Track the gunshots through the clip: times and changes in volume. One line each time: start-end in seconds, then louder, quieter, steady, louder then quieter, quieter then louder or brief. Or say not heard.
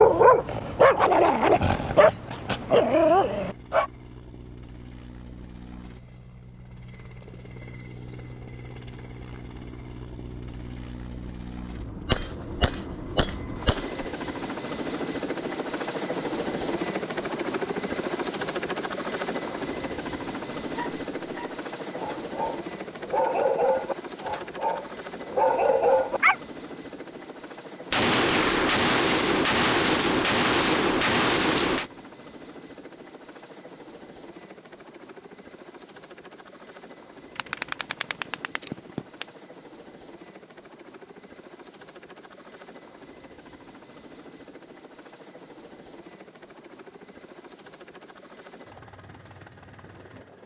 12.1-14.1 brief
27.9-31.9 steady
37.4-39.2 brief.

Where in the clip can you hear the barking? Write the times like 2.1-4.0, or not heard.
0.0-3.9, 20.7-26.4.